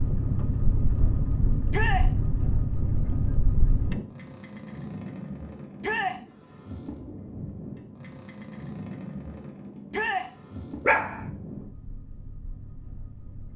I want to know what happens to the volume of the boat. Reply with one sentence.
The loudness of the boat goes down.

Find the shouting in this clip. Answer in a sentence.
You can hear the shouting from 1.7 to 2.1 s, from 5.8 to 6.2 s and from 9.9 to 10.3 s.